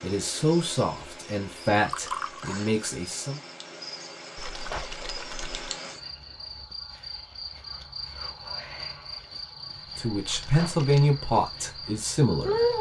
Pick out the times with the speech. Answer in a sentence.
You can hear the speech from 0.0 to 3.4 s and from 9.9 to 12.7 s.